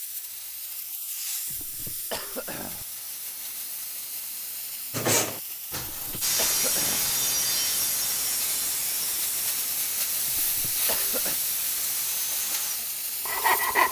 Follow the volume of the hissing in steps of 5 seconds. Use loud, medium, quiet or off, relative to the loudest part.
medium, loud, loud.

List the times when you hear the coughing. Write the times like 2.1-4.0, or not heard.
1.5-2.9, 5.8-7.1, 10.2-11.3.